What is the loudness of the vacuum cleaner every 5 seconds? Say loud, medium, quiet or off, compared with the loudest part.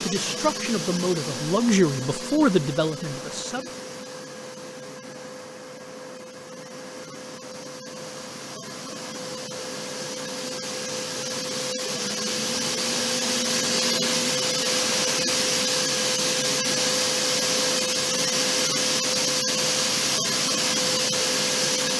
medium, quiet, loud, loud, loud.